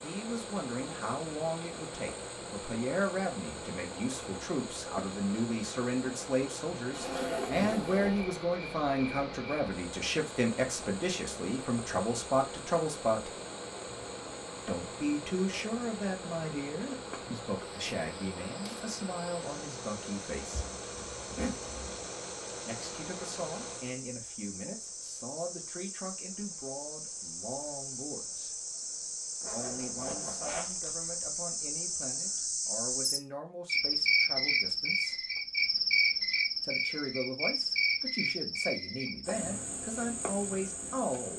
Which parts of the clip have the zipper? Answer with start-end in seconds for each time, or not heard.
6.9-8.3, 20.5-22.1, 29.4-30.9.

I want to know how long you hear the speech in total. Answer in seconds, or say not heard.
36 s.